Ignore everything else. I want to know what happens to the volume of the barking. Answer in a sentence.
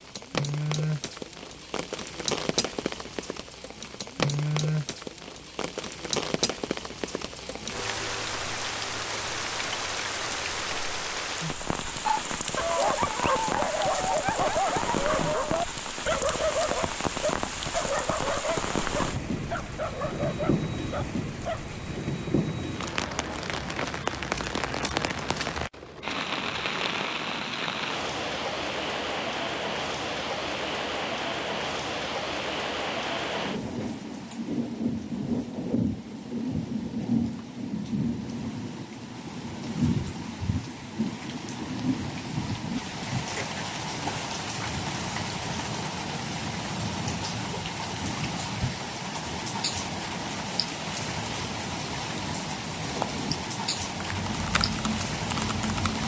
The loudness of the barking goes down.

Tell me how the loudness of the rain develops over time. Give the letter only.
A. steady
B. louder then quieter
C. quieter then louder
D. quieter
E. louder
A.